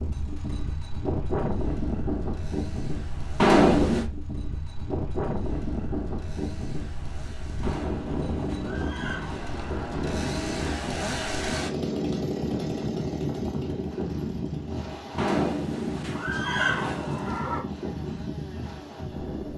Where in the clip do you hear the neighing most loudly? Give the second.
4 s.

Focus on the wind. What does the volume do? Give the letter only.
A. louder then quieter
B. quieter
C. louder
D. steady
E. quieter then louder
D.